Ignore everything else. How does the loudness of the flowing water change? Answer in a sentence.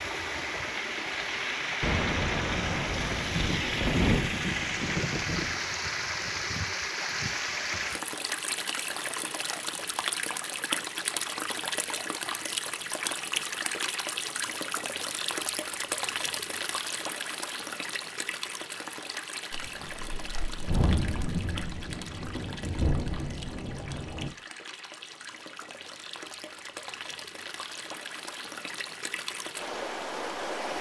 The loudness of the flowing water goes down.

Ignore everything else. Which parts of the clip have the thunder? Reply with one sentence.
The thunder can be heard from 1.8 to 5.5 s and from 19.5 to 24.4 s.